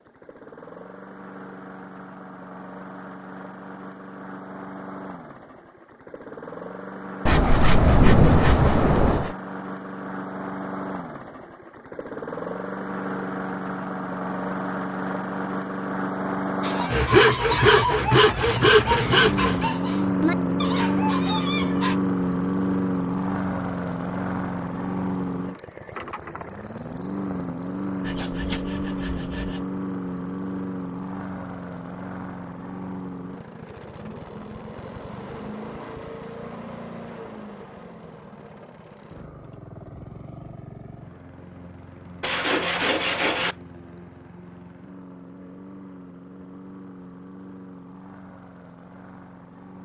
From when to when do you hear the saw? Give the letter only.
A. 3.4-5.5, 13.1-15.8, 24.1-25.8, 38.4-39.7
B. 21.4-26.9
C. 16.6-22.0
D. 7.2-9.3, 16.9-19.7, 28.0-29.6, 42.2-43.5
D.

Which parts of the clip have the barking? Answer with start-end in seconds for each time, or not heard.
16.6-22.0.